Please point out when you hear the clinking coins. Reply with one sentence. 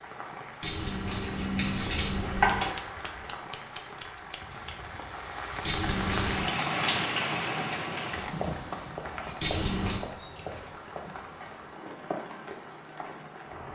The clinking coins can be heard from 0.6 to 2.7 s, from 5.6 to 6.5 s and from 9.4 to 10.0 s.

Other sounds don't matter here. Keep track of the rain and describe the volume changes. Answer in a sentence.
The loudness of the rain goes up, then down.